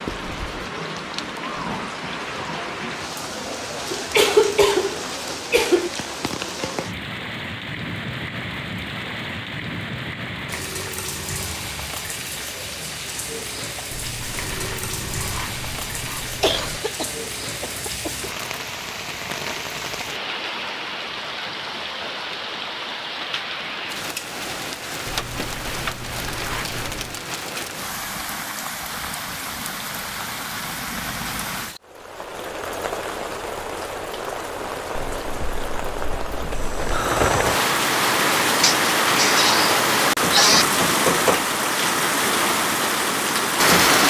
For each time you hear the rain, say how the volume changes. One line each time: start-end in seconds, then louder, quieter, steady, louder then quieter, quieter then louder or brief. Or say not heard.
0.0-44.0 louder.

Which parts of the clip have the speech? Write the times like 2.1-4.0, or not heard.
not heard.